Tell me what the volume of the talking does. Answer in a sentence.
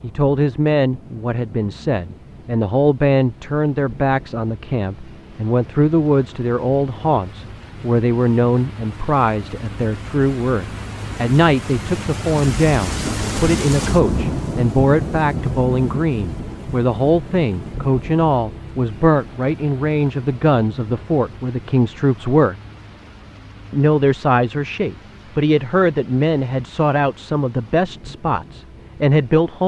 The volume of the talking stays about the same.